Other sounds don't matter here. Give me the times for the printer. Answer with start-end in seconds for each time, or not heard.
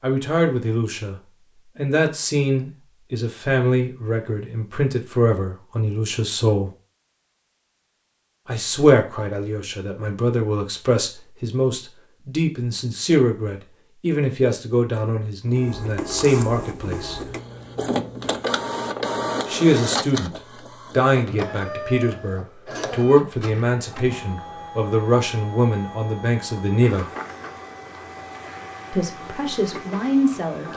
15.4-30.7.